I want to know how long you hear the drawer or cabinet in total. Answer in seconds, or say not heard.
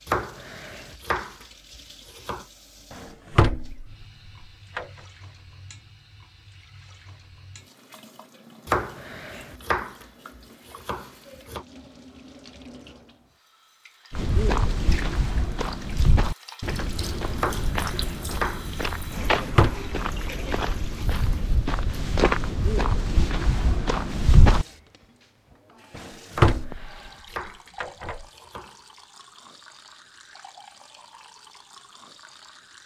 3 s.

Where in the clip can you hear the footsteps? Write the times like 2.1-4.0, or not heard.
14.1-24.6.